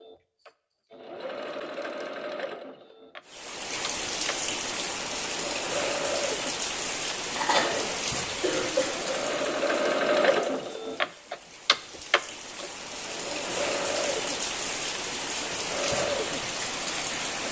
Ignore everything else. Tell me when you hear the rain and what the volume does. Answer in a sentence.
You can hear the rain from 3.2 to 17.4 s, getting quieter then louder.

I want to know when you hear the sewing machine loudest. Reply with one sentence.
The volume of the sewing machine peaks at 10 seconds.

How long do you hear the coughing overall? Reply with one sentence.
The coughing can be heard for 2 seconds in total.